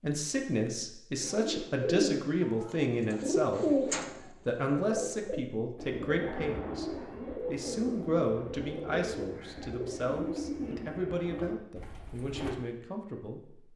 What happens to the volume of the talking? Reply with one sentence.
The volume of the talking goes down.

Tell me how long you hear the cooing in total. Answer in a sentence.
The cooing can be heard for 11 seconds in total.